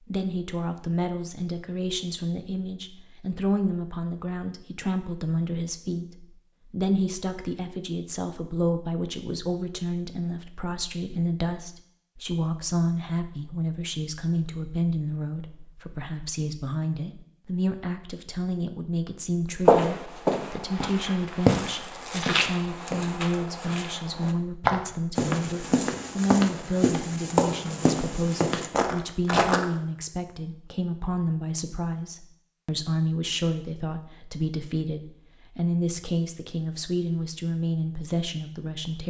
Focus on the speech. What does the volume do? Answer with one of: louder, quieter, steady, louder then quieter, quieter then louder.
steady.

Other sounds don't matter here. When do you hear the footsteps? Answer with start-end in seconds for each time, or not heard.
19.6-29.6.